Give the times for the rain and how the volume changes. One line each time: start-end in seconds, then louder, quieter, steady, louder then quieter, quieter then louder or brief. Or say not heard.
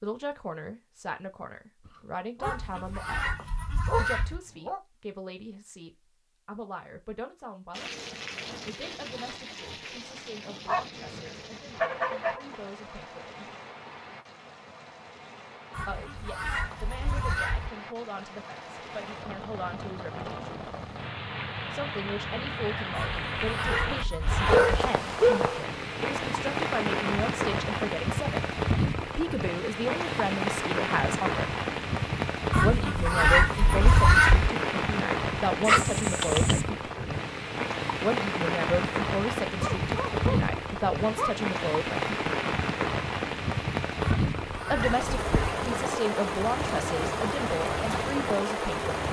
7.7-49.0 louder.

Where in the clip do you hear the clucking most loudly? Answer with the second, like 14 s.
34 s.